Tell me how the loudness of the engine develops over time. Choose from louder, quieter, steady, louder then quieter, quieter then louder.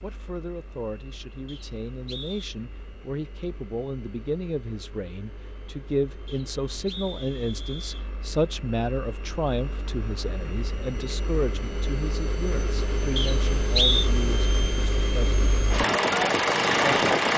louder.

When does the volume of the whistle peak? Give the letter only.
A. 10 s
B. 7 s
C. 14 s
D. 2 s
C.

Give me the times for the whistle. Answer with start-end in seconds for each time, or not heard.
1.4-2.5, 6.2-8.1, 13.2-14.1.